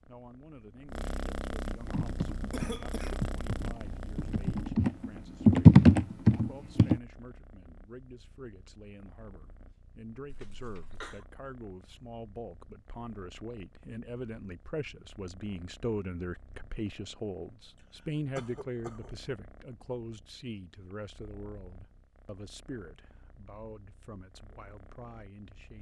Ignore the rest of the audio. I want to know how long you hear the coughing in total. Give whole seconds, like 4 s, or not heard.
3 s.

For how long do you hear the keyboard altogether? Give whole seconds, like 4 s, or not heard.
5 s.